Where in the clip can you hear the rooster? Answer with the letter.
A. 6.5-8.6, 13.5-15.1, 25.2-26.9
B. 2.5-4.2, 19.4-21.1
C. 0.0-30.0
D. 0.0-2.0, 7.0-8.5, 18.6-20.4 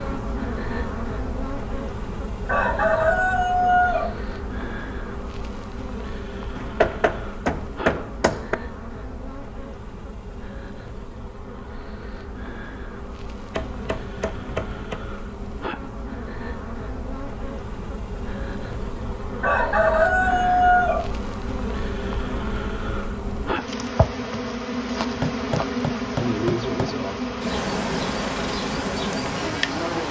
B.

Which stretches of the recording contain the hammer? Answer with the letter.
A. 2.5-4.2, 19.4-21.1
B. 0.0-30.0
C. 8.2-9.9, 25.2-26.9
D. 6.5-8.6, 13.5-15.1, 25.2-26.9
D.